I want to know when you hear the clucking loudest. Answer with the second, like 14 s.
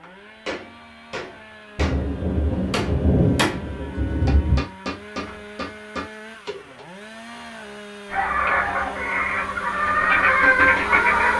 11 s.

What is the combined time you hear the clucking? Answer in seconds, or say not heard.
3 s.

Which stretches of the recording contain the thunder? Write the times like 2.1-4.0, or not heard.
1.8-4.7.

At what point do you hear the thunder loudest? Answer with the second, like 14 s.
3 s.